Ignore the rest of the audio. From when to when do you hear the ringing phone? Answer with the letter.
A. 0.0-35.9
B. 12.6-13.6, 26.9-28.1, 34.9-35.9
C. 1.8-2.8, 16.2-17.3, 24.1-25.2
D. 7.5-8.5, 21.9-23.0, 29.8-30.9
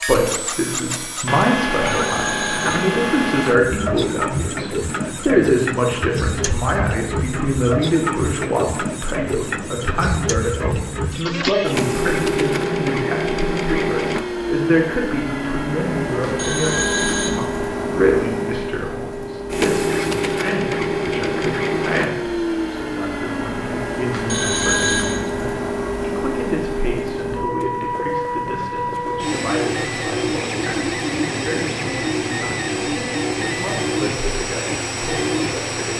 C.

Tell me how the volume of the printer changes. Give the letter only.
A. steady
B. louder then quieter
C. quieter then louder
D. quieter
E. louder
A.